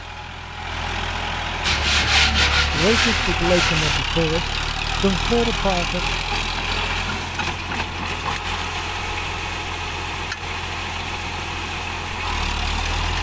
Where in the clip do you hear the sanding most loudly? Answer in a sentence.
The volume of the sanding peaks at 2 seconds.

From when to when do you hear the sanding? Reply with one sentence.
The sanding can be heard from 1.6 to 4.0 s.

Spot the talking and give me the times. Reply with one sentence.
The talking can be heard from 2.7 to 6.0 s.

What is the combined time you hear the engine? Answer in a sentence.
You can hear the engine for 13 seconds altogether.